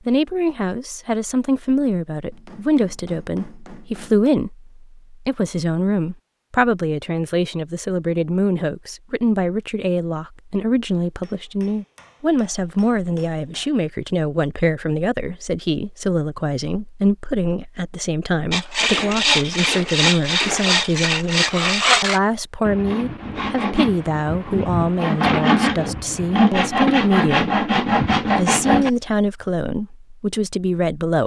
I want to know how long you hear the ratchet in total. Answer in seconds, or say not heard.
not heard.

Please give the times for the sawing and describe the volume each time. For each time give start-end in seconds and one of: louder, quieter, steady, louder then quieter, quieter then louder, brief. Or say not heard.
18.5-28.9 quieter then louder.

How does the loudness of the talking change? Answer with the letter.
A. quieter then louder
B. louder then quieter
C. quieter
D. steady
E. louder
D.